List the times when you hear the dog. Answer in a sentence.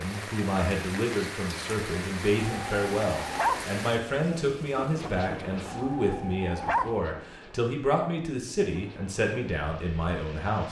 You can hear the dog from 2.4 to 3.7 s and from 5.7 to 7.0 s.